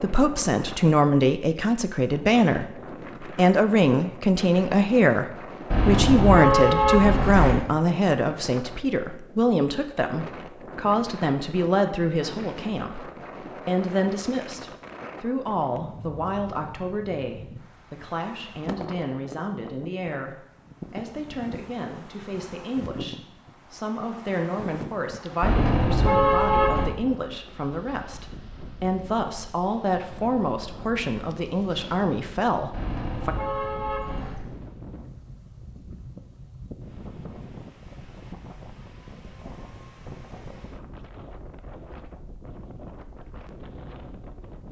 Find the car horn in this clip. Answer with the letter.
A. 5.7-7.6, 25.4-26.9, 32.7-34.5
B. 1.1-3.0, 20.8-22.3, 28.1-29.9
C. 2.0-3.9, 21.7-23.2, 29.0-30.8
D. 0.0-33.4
A.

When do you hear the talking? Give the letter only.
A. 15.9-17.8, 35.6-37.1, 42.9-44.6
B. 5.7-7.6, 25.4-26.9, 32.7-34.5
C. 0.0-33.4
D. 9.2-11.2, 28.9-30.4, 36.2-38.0
C.